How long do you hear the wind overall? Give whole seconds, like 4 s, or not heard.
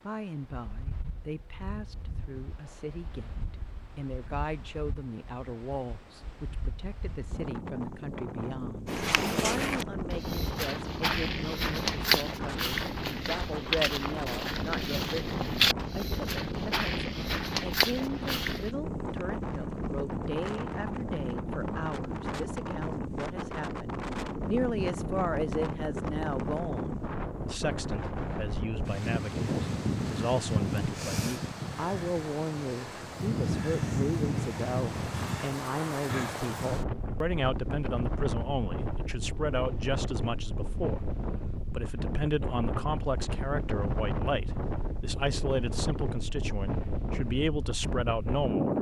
49 s.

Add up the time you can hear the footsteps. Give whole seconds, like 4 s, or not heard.
10 s.